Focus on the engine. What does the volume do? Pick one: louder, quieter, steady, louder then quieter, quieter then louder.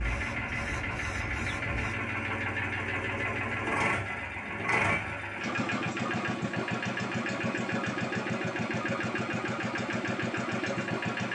steady.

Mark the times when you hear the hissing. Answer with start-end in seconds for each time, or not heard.
0.0-1.9.